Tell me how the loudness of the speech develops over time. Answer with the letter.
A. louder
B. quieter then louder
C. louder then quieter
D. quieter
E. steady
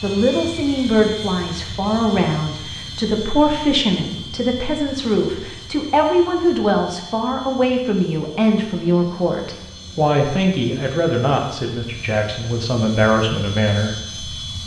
E.